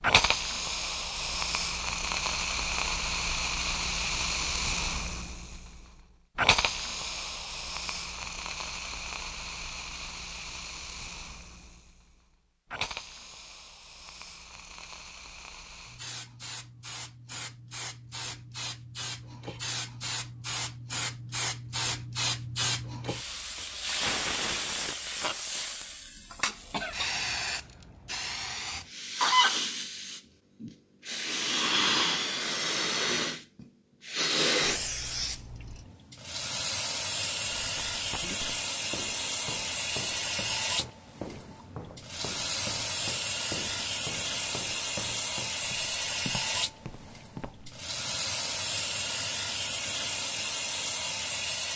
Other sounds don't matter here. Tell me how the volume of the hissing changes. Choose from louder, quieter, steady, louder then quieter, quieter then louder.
quieter then louder.